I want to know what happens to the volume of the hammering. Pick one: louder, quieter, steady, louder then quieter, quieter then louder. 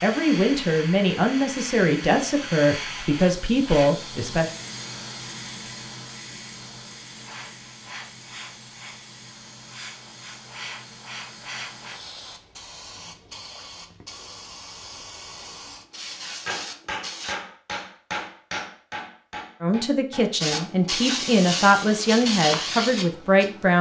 quieter.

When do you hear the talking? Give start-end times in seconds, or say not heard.
0.0-4.5, 19.6-23.7.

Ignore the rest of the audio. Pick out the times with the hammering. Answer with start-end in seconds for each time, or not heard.
16.4-20.7.